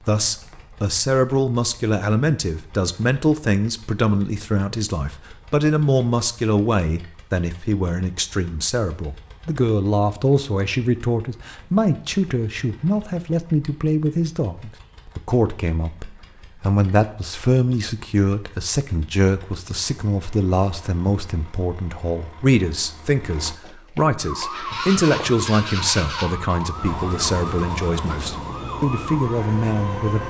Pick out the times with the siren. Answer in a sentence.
You can hear the siren from 24.1 to 30.2 s.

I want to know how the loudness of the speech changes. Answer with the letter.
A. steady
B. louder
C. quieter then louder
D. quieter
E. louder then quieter
A.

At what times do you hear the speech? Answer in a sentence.
The speech can be heard from 0.1 to 30.2 s.